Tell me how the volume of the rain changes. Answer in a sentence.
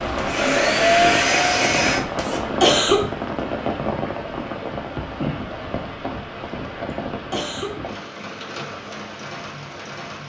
The volume of the rain goes down.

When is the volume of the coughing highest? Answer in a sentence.
The volume of the coughing peaks at 3 seconds.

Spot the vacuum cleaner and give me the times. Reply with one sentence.
The vacuum cleaner can be heard from 0.0 to 2.4 s.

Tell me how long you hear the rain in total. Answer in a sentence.
You can hear the rain for 10 seconds altogether.